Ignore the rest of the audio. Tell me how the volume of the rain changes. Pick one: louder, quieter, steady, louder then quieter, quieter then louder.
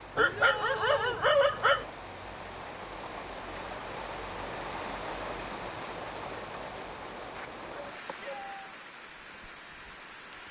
louder then quieter.